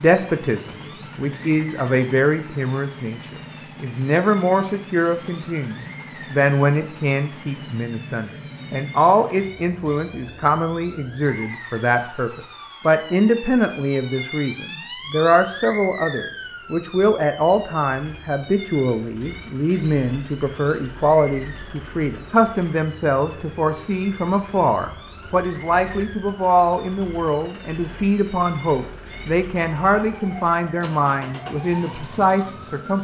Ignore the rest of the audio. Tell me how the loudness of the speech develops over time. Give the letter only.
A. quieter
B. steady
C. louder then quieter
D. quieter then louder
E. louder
B.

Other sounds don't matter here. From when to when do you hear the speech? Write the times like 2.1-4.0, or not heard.
0.0-32.9.